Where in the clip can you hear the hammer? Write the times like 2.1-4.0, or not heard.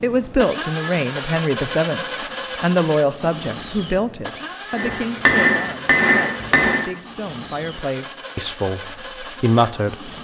4.8-6.8.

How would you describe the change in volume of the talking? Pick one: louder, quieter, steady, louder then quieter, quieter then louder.
quieter then louder.